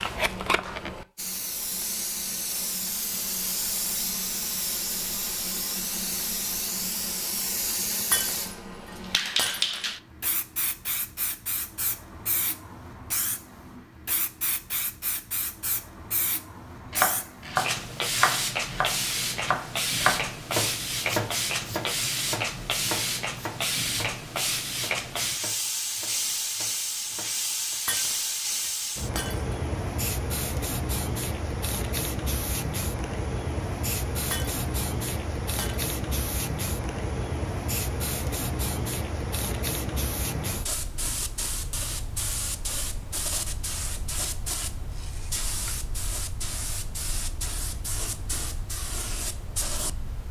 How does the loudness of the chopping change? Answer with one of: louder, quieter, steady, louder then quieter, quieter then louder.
quieter.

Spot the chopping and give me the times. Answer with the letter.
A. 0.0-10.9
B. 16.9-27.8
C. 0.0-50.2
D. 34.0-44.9
B.